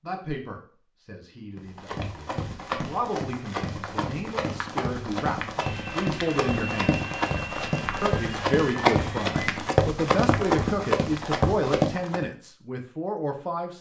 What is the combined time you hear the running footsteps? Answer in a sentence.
You can hear the running footsteps for 11 seconds altogether.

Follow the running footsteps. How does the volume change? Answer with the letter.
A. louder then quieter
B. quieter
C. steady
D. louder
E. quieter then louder
D.